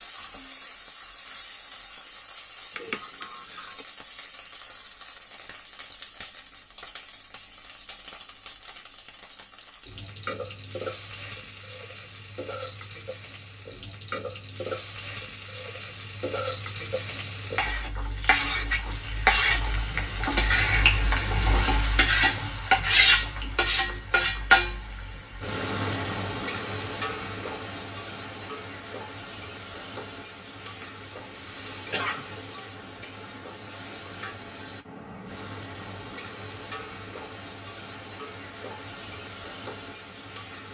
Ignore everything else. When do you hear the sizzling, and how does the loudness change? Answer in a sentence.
You can hear the sizzling from 0.0 to 40.7 s, getting louder then quieter.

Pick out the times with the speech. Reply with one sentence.
The speech can't be heard in this clip.